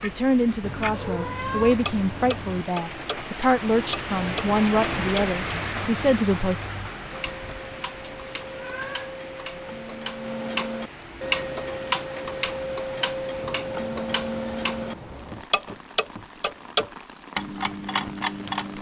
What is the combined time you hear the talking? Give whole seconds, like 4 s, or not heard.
7 s.